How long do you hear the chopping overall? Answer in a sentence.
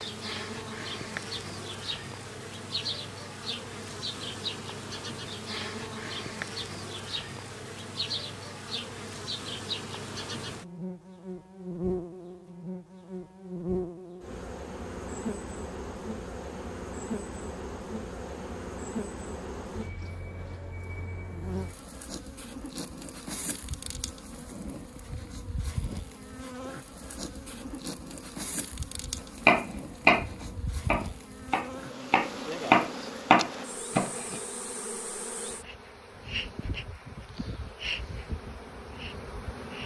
You can hear the chopping for 5 seconds altogether.